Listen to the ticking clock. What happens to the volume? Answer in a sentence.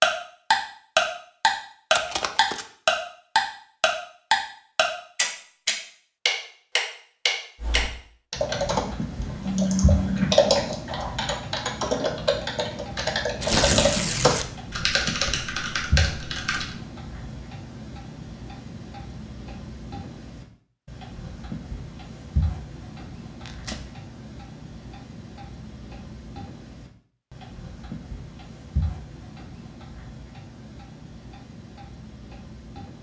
The volume of the ticking clock goes down.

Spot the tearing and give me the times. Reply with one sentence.
The tearing can be heard from 1.9 to 2.6 s, from 13.4 to 14.5 s and from 23.4 to 23.9 s.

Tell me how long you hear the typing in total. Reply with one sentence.
You can hear the typing for 9 seconds altogether.